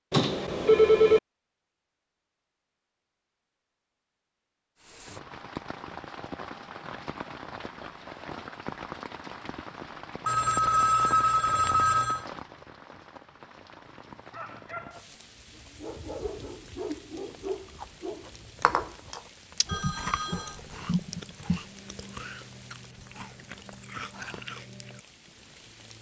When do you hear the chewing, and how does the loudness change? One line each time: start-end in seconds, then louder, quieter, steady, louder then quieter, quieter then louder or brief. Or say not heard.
17.8-25.0 quieter.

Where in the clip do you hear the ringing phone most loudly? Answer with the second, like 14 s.
1 s.